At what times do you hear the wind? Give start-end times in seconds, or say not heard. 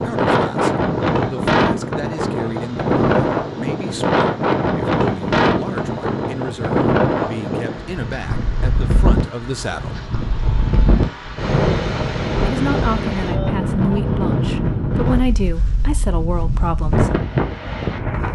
0.0-18.2.